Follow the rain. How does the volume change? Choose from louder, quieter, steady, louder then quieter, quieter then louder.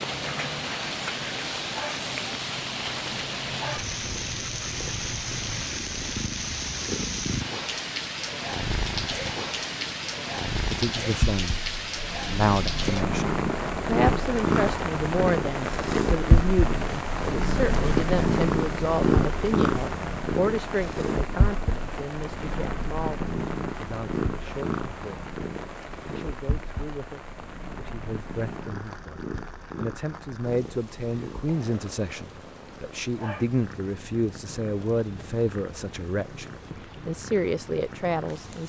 quieter.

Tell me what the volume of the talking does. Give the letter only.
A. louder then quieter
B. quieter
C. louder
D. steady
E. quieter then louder
E.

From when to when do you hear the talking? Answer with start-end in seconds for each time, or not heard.
10.7-25.3, 26.1-38.6.